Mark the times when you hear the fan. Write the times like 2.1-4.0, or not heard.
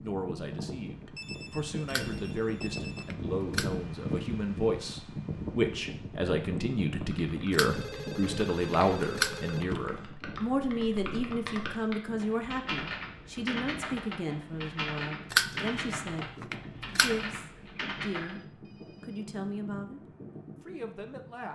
0.0-21.5.